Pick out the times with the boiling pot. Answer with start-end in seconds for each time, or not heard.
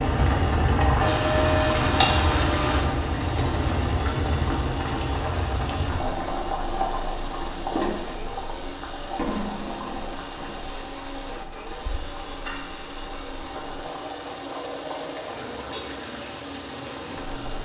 0.0-17.5.